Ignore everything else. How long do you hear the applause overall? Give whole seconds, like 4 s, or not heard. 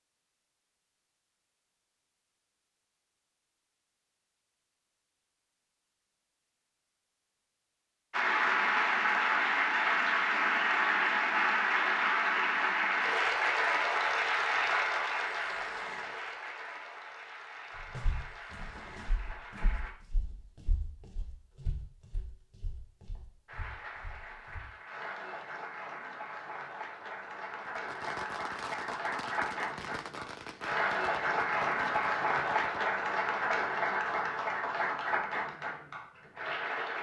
25 s.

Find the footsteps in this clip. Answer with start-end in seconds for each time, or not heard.
17.8-24.6.